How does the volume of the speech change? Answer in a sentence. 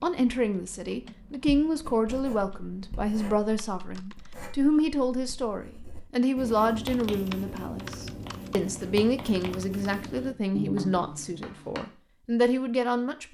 The loudness of the speech stays about the same.